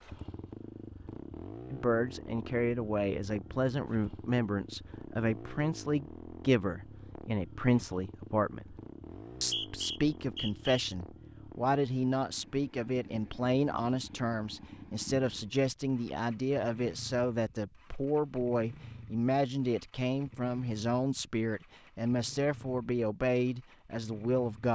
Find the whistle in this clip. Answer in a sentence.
You can hear the whistle from 9.1 to 10.8 s.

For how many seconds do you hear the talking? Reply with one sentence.
You can hear the talking for 22 seconds altogether.